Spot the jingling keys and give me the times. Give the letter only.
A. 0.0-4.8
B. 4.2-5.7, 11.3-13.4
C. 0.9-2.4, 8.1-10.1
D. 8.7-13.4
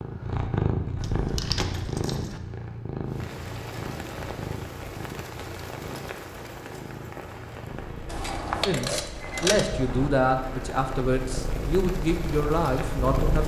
C.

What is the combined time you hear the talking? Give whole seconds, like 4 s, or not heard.
5 s.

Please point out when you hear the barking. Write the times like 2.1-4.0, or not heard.
not heard.